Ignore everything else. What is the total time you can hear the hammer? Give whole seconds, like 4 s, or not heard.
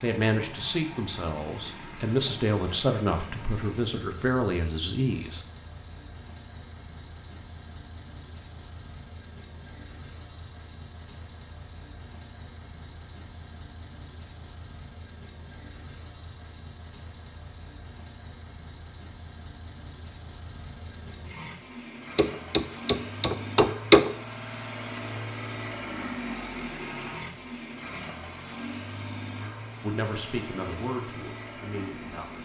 2 s.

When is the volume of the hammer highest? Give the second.
24 s.